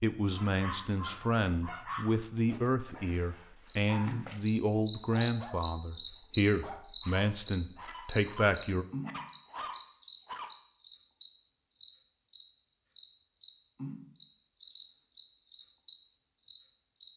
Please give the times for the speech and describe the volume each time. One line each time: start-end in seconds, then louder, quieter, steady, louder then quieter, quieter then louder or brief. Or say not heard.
0.0-8.8 steady.